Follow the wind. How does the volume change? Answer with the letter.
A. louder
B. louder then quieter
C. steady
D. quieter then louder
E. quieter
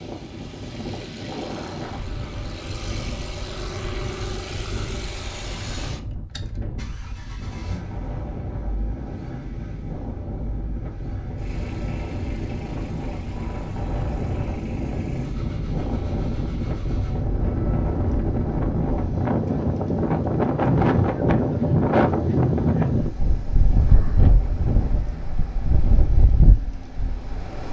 A.